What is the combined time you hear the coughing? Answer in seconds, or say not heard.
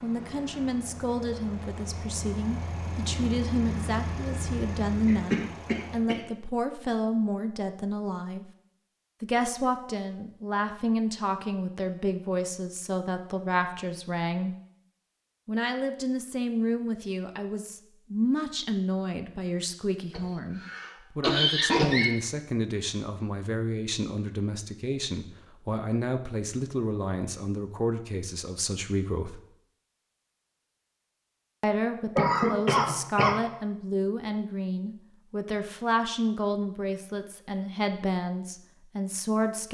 4 s.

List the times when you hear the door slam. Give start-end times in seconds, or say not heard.
not heard.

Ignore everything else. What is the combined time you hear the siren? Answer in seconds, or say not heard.
not heard.